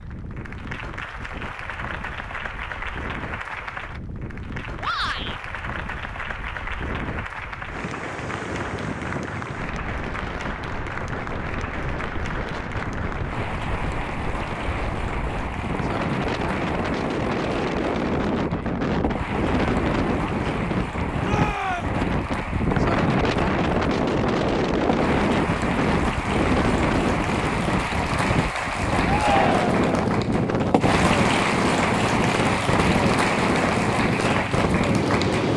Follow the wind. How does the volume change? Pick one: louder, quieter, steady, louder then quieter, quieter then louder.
louder.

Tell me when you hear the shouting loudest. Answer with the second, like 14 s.
29 s.